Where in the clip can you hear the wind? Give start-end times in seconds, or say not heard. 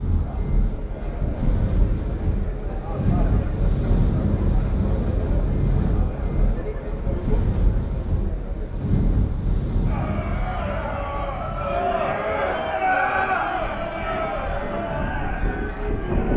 0.0-16.3.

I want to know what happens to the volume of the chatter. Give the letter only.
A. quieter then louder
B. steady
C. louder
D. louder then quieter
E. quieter
C.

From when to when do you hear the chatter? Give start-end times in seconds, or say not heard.
0.1-16.3.